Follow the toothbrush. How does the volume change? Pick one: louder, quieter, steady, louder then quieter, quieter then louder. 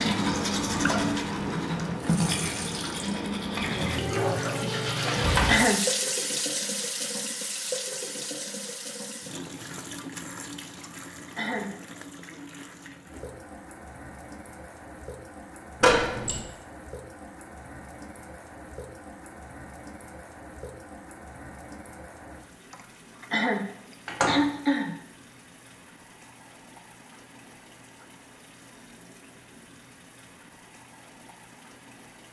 quieter.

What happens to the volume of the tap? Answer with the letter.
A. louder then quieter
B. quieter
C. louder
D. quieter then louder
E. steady
B.